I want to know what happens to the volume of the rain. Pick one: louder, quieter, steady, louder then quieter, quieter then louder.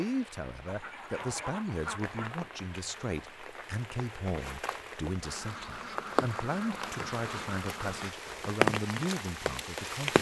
louder.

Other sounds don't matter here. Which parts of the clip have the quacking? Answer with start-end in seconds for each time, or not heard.
0.7-2.5, 5.2-8.2.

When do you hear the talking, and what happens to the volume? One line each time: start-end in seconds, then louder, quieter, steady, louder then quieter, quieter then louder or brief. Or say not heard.
0.0-10.1 steady.